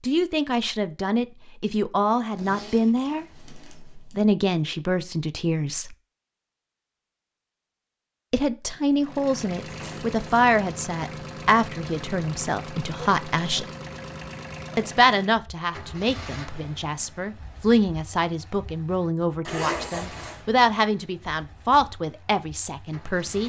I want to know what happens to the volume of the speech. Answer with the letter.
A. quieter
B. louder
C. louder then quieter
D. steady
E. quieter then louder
D.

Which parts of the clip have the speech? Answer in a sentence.
The speech can be heard from 0.0 to 6.0 s, from 8.3 to 13.7 s and from 14.8 to 23.4 s.